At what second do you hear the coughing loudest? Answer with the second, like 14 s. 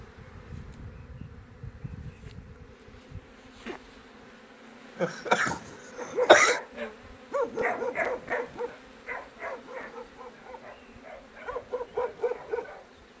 6 s.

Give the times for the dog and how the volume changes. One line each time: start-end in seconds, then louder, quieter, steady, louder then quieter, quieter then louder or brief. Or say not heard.
6.0-12.8 quieter then louder.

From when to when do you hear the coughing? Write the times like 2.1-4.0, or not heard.
5.0-6.6.